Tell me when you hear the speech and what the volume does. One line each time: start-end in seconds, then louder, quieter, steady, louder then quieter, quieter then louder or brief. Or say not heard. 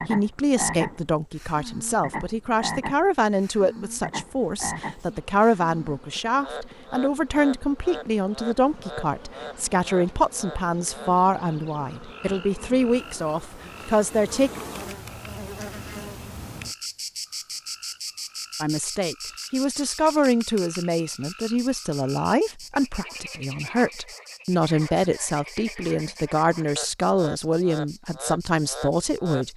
0.0-14.5 steady
18.6-29.5 steady.